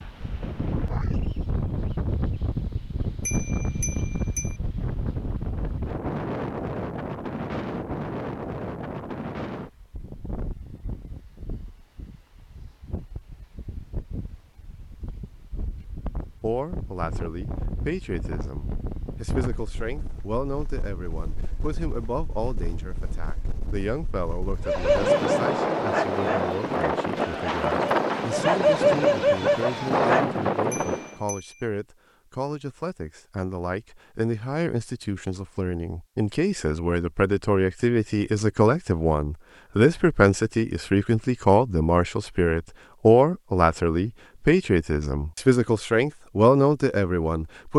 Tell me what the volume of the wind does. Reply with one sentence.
The volume of the wind goes down, then up.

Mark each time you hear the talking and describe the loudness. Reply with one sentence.
You can hear the talking from 16.4 to 47.7 s, getting louder.